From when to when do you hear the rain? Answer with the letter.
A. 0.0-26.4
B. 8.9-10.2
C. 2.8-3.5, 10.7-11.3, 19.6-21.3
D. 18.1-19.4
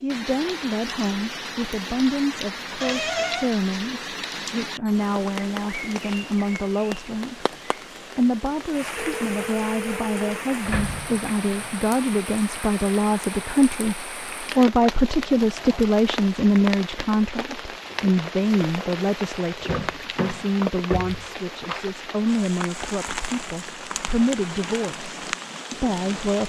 A.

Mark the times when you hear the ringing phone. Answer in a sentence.
The ringing phone can be heard from 8.9 to 10.2 s.